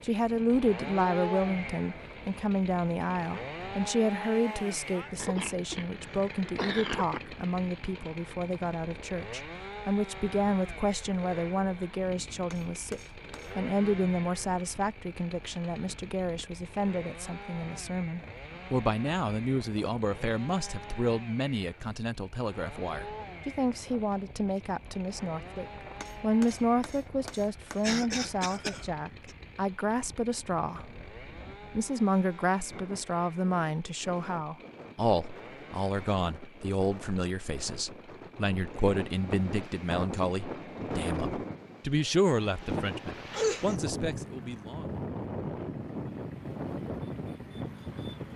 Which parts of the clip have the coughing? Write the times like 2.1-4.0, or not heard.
5.2-7.2, 27.8-29.4, 43.3-43.8.